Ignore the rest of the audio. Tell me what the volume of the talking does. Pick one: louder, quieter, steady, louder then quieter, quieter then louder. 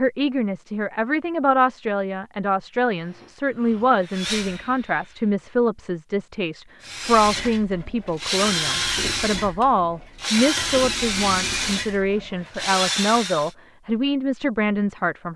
steady.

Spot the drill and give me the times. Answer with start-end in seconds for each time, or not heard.
2.9-5.3, 6.8-13.6.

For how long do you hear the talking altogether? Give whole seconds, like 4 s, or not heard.
15 s.